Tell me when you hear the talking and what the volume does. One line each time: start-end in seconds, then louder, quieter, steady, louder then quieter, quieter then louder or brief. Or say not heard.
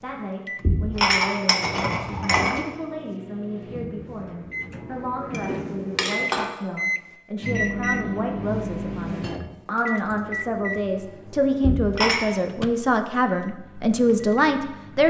0.0-15.0 louder.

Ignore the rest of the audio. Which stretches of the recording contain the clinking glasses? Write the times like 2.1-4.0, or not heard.
0.6-2.6, 5.3-6.5, 11.6-12.2.